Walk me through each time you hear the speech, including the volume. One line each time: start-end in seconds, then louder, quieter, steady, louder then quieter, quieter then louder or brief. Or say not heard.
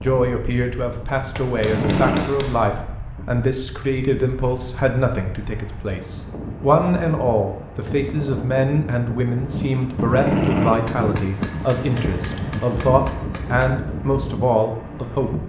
0.0-15.4 steady.